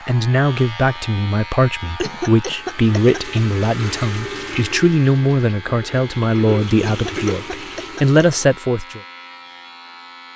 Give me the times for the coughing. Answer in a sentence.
You can hear the coughing from 2.0 to 3.4 s and from 6.8 to 8.4 s.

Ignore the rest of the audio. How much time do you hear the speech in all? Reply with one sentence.
You can hear the speech for 9 seconds altogether.